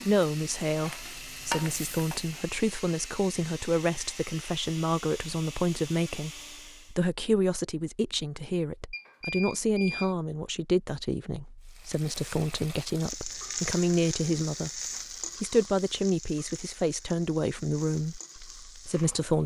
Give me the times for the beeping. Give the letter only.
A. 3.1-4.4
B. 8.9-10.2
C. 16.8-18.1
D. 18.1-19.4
B.